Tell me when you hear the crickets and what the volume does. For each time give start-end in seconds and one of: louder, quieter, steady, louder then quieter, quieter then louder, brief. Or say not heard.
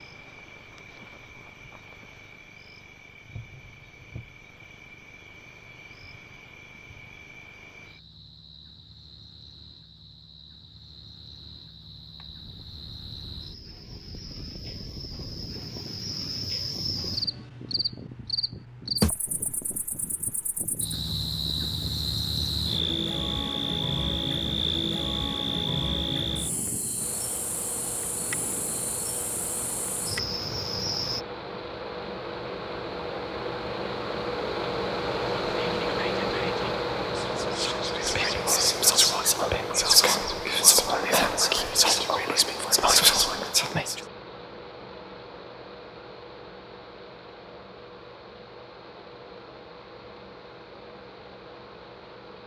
0.0-31.2 louder.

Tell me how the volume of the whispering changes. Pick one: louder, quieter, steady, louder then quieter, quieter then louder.
louder.